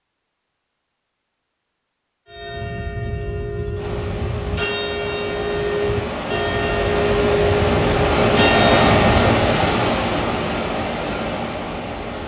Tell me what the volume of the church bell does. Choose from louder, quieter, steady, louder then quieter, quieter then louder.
louder.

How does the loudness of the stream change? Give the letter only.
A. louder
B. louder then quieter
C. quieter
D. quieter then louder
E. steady
B.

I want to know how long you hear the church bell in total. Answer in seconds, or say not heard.
7 s.